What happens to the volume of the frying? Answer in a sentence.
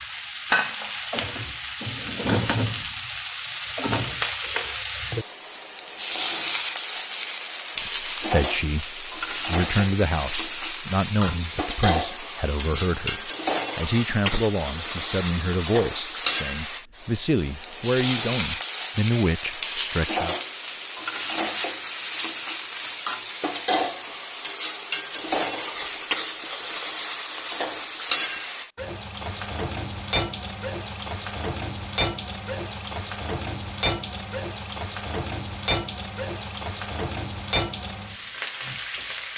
The volume of the frying stays about the same.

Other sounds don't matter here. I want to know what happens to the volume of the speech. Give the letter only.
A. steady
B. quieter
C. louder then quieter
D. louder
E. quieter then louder
A.